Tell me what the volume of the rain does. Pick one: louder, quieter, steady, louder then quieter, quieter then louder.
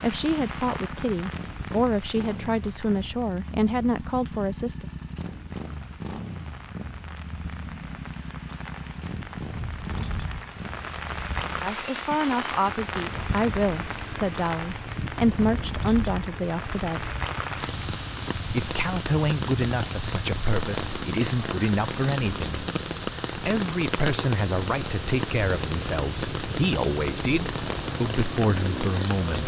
louder.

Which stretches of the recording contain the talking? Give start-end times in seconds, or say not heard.
0.0-4.8, 11.6-17.1, 18.5-22.5, 23.4-29.4.